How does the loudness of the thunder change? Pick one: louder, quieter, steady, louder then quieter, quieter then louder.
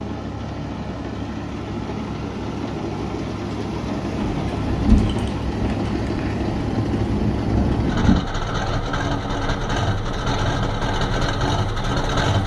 quieter then louder.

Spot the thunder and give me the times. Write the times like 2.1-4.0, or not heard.
4.2-8.2.